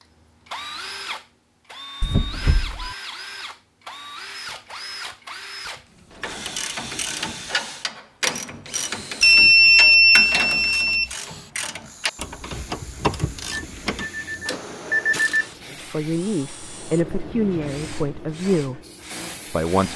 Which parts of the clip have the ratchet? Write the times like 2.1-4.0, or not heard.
6.1-15.6.